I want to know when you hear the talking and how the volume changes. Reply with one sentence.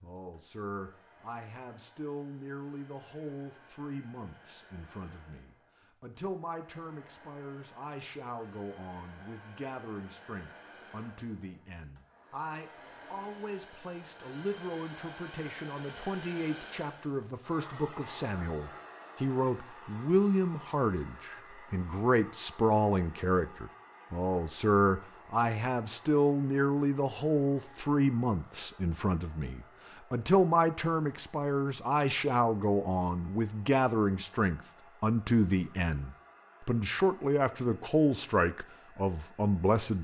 The talking can be heard from 0.0 to 39.9 s, getting louder.